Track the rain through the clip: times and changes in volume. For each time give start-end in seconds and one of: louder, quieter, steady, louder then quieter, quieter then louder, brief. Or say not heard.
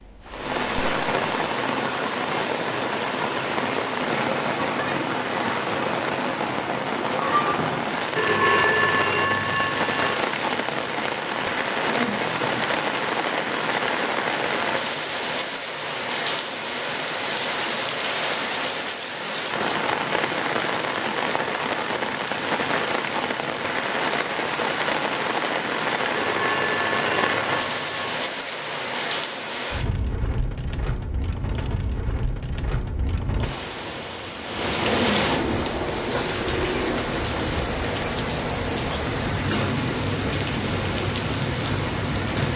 0.0-42.5 steady.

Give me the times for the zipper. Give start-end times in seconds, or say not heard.
11.8-12.7, 34.8-36.4.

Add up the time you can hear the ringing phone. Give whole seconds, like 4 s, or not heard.
4 s.